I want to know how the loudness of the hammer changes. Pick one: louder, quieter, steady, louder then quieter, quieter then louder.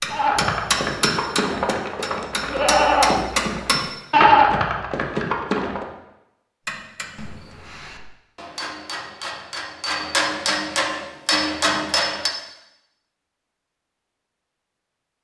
quieter then louder.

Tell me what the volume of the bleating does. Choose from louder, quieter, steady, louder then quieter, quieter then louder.
louder then quieter.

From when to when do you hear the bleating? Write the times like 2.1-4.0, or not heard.
0.1-5.8.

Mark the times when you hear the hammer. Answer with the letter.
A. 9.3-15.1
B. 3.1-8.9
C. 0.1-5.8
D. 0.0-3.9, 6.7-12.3
D.